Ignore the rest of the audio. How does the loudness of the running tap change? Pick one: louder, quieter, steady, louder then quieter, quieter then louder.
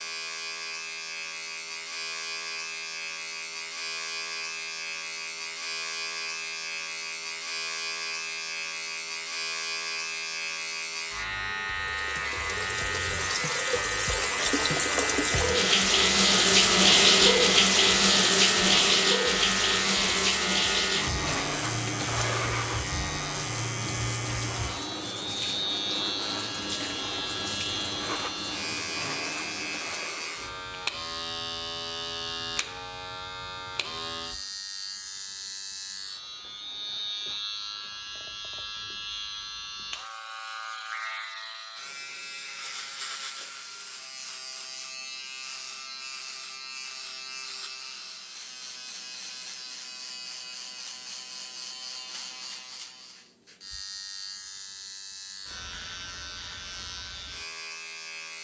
louder then quieter.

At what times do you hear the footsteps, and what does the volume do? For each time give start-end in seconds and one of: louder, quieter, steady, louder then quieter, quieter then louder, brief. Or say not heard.
not heard.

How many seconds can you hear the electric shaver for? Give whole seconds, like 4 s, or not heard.
58 s.